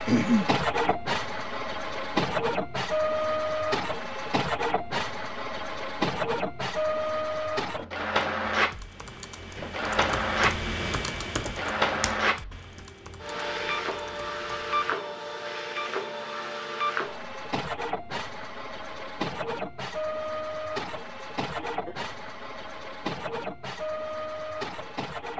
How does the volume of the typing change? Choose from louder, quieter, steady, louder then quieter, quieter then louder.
louder then quieter.